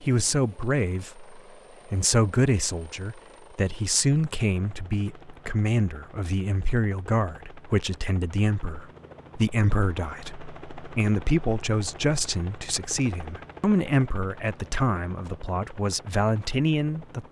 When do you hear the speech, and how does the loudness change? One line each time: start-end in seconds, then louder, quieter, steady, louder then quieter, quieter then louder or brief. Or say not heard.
0.0-17.2 steady.